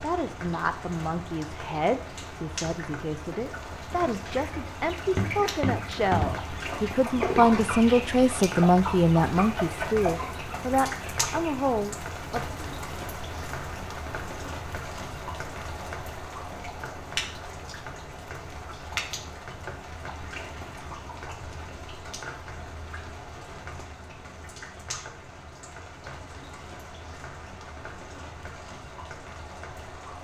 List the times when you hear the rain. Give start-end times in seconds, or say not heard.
0.0-30.1.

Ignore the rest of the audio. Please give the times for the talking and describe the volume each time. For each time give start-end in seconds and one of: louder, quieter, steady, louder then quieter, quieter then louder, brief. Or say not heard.
0.0-12.4 louder then quieter.